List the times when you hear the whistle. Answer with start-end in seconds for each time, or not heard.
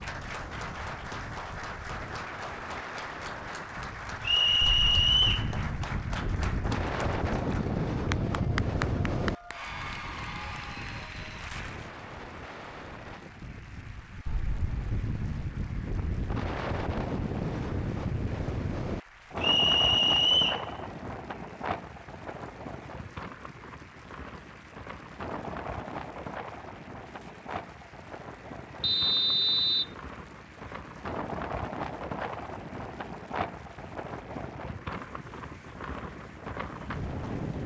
4.2-5.5, 19.4-20.6, 28.8-29.9.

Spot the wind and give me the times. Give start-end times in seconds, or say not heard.
0.0-37.6.